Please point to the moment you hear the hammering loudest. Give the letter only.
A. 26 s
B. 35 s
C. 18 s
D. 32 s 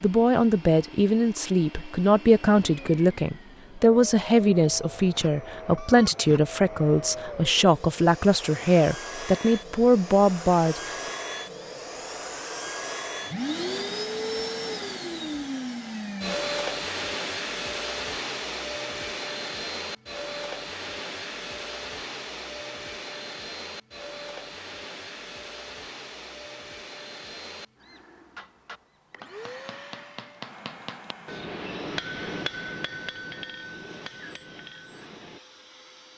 D.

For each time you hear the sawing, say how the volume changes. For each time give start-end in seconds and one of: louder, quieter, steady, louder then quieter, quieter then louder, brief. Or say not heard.
not heard.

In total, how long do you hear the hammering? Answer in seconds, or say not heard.
7 s.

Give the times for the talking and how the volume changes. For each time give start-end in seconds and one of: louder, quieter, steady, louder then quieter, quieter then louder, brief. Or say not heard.
0.0-10.9 steady.